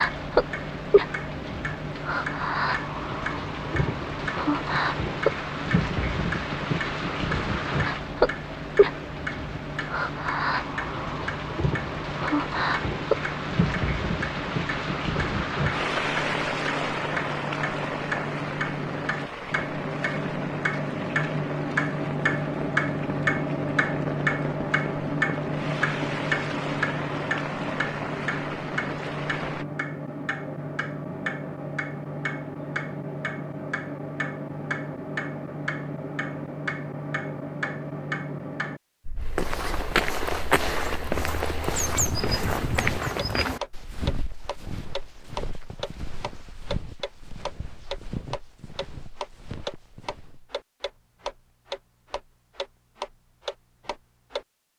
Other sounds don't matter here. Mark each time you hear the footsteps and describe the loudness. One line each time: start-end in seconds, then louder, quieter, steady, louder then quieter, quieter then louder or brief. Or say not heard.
39.2-50.5 quieter.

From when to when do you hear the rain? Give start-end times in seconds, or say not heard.
0.0-29.6.